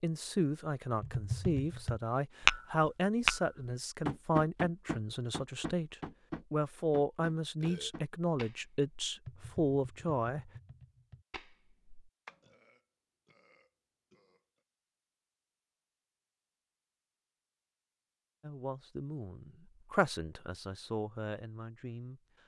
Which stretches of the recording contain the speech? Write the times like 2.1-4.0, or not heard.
0.0-10.5, 18.4-22.2.